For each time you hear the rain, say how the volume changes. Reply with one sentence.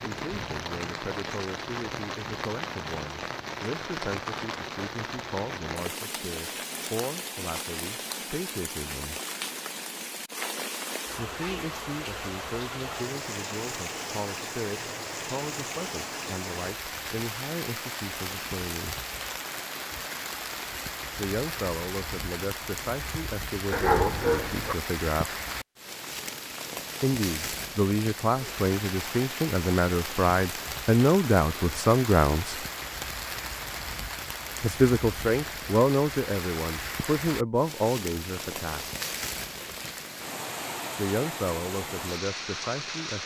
You can hear the rain from 0.0 to 43.2 s, at a steady volume.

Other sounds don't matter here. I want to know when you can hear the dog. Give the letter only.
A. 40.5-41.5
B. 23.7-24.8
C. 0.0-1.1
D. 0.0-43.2
B.